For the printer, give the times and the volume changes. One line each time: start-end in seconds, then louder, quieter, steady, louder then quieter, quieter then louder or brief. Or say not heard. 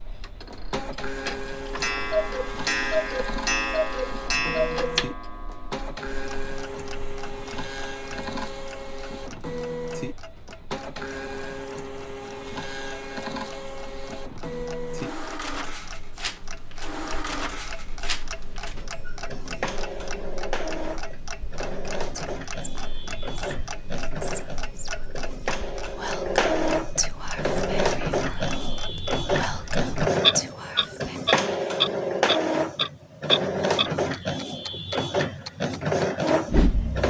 0.0-37.0 louder.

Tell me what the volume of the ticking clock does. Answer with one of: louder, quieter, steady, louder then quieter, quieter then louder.
quieter then louder.